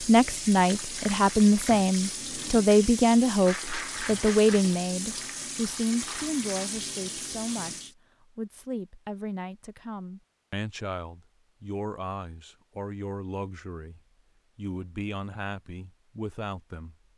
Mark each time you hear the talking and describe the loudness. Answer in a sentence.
You can hear the talking from 0.0 to 16.9 s, getting quieter.